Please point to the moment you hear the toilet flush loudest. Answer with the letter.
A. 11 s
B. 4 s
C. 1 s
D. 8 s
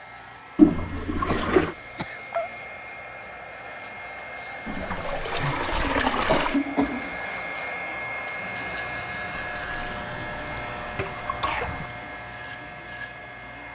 C.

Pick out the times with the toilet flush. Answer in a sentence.
You can hear the toilet flush from 0.6 to 1.8 s, from 4.7 to 6.6 s and from 9.4 to 11.9 s.